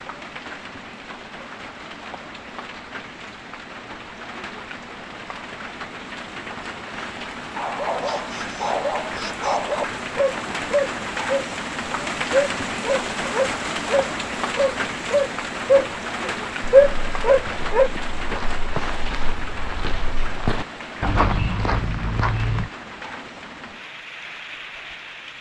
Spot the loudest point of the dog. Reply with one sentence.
The loudest moment of the dog is at 17 seconds.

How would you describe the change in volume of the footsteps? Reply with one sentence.
The loudness of the footsteps goes up.